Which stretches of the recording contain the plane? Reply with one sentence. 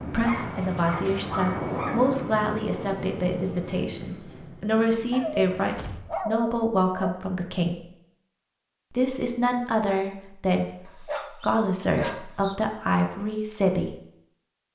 The plane can be heard from 0.0 to 6.2 s.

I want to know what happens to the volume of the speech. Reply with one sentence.
The volume of the speech stays about the same.